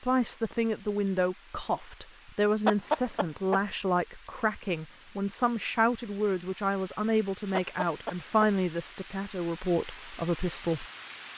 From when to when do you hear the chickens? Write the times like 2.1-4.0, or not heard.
2.6-3.6, 7.5-8.4.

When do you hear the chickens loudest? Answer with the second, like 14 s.
3 s.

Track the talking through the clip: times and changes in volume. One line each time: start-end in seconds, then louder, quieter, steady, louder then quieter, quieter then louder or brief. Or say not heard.
0.0-10.8 steady.